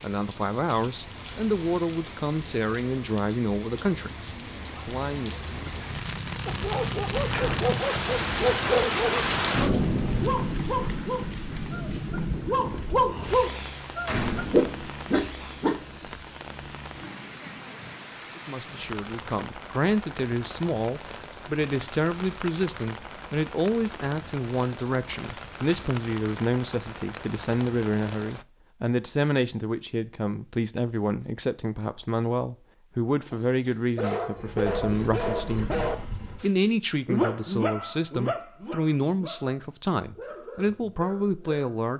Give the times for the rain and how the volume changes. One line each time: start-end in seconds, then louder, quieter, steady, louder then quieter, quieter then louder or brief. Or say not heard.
0.0-28.4 louder then quieter.